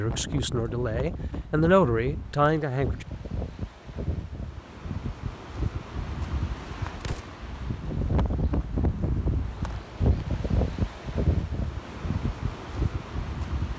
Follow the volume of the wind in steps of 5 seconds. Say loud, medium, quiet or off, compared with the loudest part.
medium, loud, loud.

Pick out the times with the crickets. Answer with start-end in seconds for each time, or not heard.
not heard.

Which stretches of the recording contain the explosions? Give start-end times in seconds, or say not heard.
7.0-7.5.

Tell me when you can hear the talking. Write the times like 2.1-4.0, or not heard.
0.0-3.0.